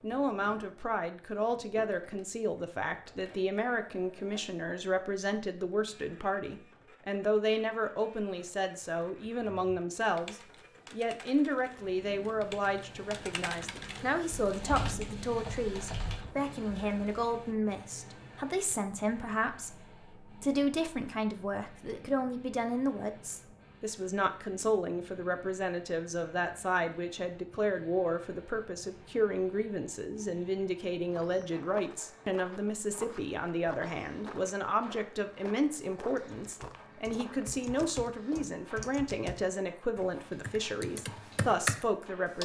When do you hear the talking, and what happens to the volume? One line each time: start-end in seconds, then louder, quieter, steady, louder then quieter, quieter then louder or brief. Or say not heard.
0.0-42.4 steady.